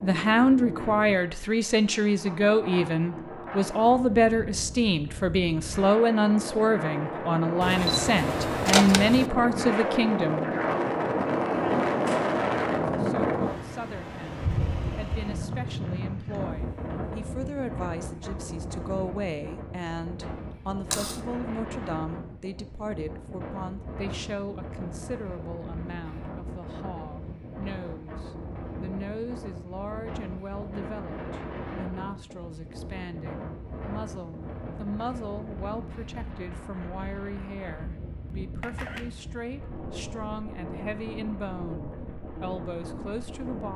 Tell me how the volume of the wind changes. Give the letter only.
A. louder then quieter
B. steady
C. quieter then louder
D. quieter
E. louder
A.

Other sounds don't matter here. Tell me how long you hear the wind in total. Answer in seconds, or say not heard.
44 s.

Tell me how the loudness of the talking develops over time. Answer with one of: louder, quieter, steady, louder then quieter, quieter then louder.
quieter.